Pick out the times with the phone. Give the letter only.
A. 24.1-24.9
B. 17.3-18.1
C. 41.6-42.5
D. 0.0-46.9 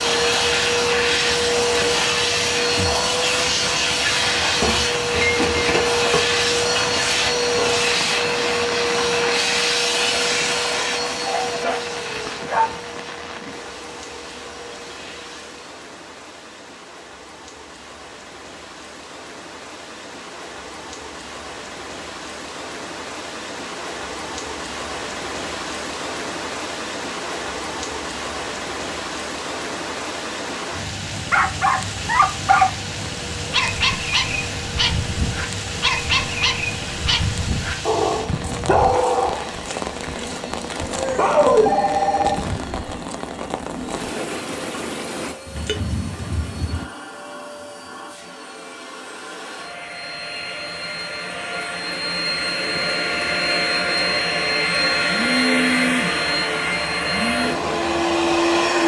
C.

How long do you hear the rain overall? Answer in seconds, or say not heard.
47 s.